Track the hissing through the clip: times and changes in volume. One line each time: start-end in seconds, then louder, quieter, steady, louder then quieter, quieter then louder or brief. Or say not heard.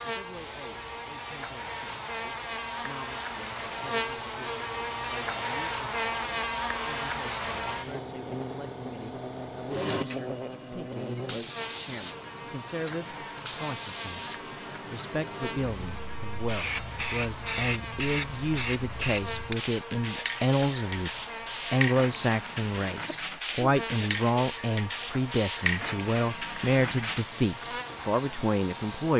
0.0-29.1 louder.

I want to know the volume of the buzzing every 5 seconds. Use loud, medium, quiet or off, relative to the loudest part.
loud, loud, medium, medium, medium, medium.